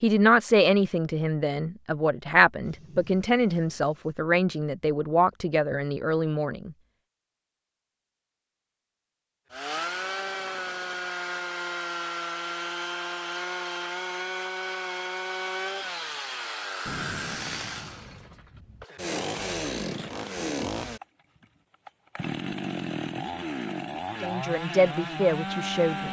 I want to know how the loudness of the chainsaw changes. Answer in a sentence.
The loudness of the chainsaw stays about the same.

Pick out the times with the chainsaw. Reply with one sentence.
You can hear the chainsaw from 9.5 to 26.0 s.